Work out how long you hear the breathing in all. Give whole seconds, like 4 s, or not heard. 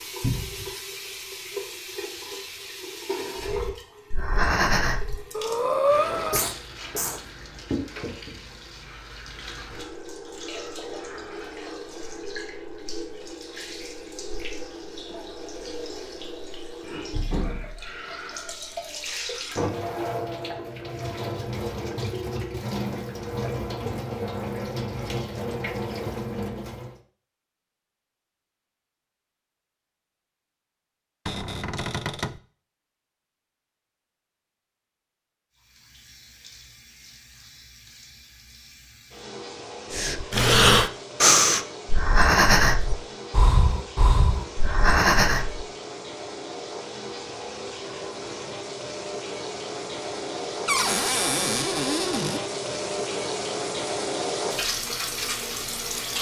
9 s.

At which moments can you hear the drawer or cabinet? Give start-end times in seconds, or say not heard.
0.2-0.8, 31.2-32.4, 50.6-52.4.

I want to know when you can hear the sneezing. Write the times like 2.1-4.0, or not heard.
6.3-7.2.